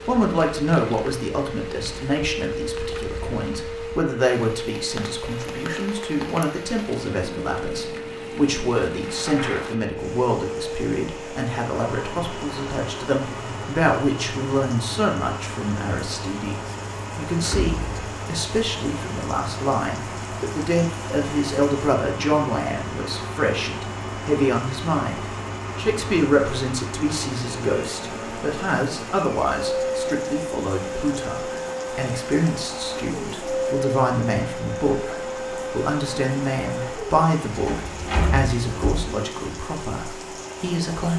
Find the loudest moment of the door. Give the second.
38 s.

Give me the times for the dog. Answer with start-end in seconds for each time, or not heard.
not heard.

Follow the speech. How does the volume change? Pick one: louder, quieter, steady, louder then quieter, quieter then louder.
steady.